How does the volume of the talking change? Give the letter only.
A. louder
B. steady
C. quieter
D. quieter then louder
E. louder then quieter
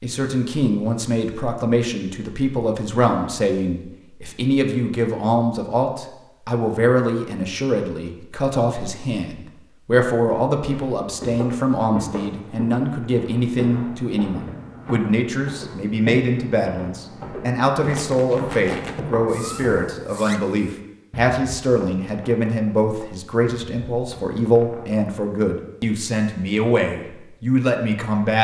B.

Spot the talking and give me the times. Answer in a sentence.
You can hear the talking from 0.0 to 28.3 s.